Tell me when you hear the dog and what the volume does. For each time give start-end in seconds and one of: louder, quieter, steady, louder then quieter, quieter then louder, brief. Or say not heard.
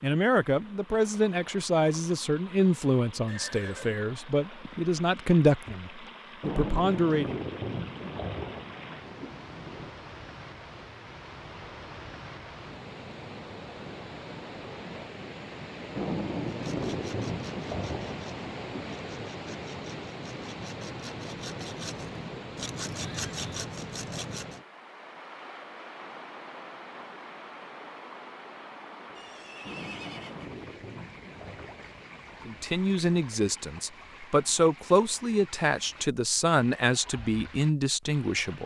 not heard.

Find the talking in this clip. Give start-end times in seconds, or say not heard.
0.0-7.4, 32.5-38.6.